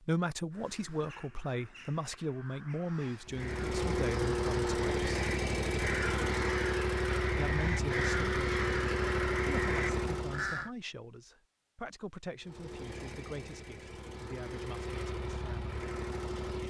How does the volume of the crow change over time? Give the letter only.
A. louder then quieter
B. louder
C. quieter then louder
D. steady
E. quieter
B.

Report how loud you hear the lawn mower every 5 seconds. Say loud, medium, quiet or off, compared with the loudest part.
loud, loud, medium, medium.